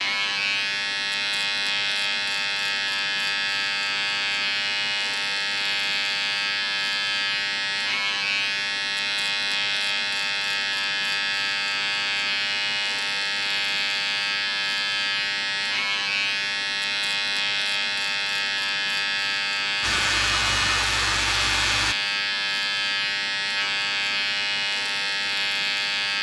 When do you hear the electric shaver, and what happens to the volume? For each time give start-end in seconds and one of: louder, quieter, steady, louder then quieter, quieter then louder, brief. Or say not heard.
0.0-26.1 steady.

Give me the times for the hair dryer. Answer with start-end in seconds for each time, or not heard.
19.8-21.9.